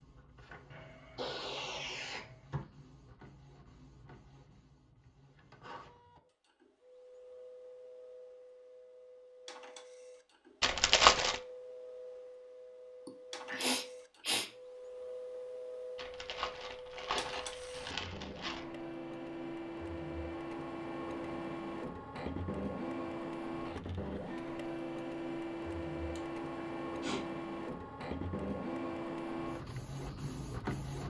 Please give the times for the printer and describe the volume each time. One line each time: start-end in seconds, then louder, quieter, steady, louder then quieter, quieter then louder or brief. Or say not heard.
0.0-31.0 louder.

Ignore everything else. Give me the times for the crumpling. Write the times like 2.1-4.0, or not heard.
10.6-11.4, 15.9-18.6.